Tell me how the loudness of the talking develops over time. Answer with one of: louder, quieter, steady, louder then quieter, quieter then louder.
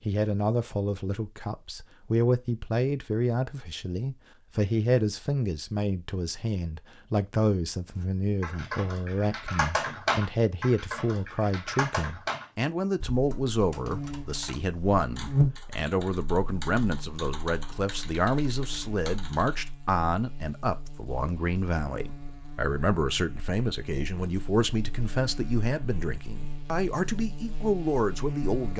steady.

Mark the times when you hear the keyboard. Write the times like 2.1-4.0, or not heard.
8.0-19.7.